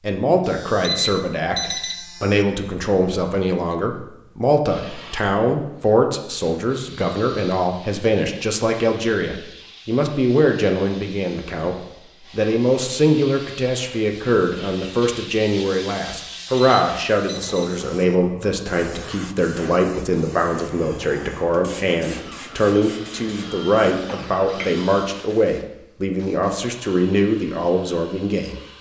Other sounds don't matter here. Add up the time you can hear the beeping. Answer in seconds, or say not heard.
4 s.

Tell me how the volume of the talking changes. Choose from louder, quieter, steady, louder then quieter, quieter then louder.
steady.